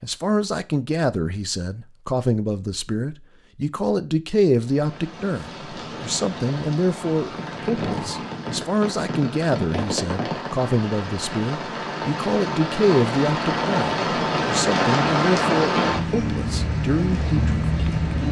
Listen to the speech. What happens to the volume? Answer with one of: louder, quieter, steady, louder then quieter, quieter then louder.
steady.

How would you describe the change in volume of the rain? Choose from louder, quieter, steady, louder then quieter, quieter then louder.
louder.